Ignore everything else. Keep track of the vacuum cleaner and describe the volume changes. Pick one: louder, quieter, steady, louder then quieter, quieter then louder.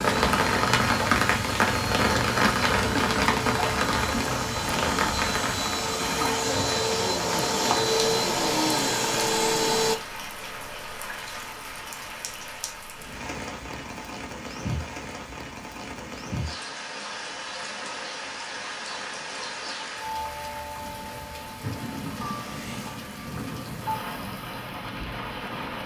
louder.